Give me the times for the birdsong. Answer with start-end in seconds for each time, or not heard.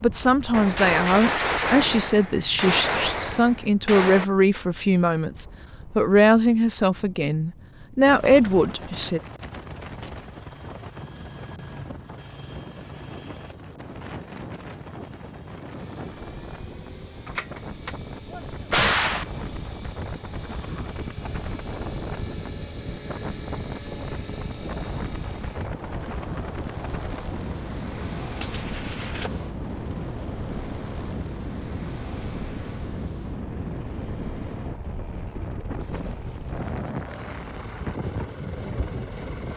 not heard.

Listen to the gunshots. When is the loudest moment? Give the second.
19 s.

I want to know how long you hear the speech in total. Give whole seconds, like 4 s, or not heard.
9 s.